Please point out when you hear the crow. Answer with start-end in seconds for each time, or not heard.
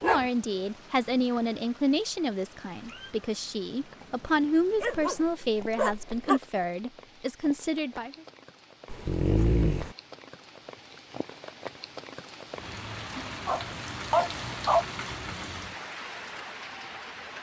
not heard.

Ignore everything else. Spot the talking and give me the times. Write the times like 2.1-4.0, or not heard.
0.0-8.2.